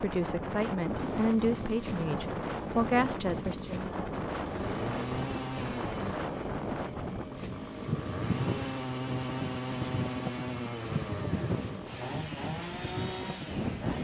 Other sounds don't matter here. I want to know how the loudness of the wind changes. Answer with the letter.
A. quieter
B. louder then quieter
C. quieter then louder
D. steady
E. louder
D.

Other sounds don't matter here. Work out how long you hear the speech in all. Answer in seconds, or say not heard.
4 s.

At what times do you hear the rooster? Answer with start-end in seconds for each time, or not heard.
not heard.